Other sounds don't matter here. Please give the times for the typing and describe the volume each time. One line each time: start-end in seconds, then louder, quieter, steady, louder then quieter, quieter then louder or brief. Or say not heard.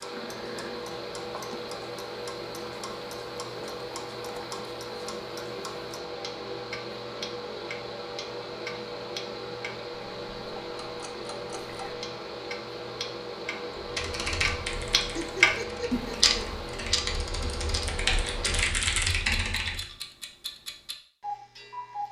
13.8-19.9 quieter then louder.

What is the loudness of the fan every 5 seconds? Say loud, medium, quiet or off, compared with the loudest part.
loud, loud, loud, loud, off.